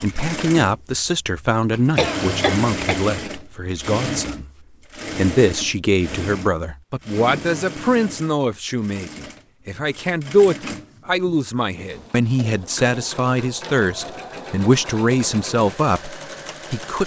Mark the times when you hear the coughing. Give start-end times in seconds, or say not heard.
1.7-3.0.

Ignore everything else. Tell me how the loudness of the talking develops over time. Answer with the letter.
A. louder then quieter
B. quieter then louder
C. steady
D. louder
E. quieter
C.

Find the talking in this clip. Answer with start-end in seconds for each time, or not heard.
0.0-4.5, 5.2-17.0.